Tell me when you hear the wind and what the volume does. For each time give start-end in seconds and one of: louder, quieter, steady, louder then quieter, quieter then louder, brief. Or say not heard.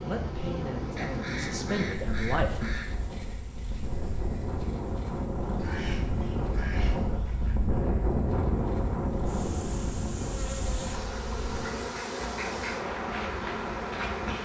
0.0-14.4 louder then quieter.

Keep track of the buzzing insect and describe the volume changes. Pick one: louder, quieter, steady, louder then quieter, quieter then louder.
quieter then louder.